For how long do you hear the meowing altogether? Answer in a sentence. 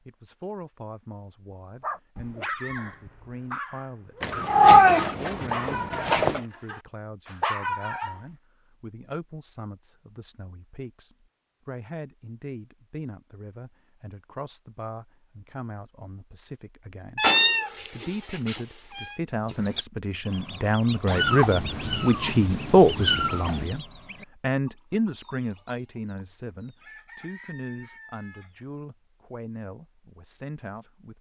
The meowing can be heard for 7 seconds in total.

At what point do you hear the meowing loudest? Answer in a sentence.
The loudest moment of the meowing is at 5 seconds.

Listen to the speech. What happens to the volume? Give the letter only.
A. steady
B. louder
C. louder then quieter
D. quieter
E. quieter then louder
C.